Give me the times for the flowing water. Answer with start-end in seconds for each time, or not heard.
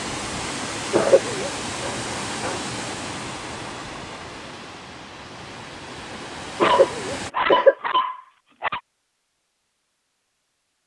0.0-7.3.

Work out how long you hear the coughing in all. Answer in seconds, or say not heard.
2 s.